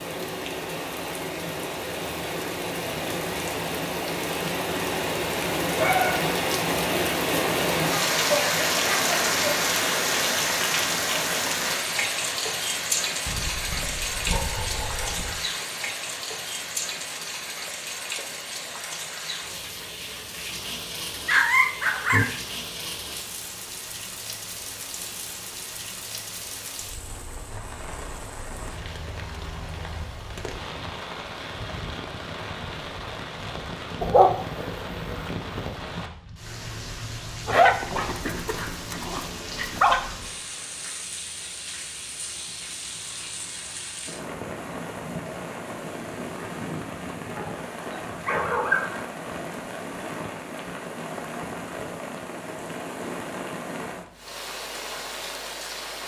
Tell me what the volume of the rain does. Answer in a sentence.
The loudness of the rain goes down.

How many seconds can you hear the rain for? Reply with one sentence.
The rain can be heard for 56 seconds in total.